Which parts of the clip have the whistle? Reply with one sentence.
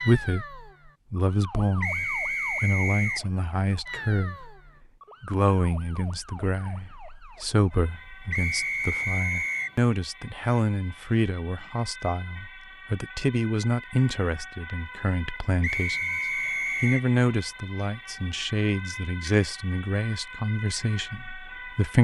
The whistle can be heard from 1.8 to 3.2 s, from 8.3 to 9.8 s and from 15.6 to 17.1 s.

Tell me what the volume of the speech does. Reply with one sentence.
The loudness of the speech stays about the same.